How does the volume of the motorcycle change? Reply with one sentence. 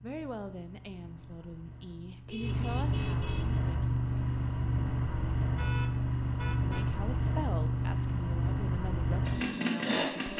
The volume of the motorcycle goes up.